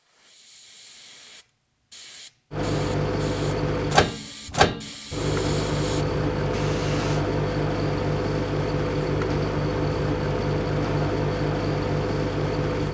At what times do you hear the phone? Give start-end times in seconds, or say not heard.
not heard.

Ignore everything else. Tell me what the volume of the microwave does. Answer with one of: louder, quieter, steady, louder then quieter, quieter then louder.
steady.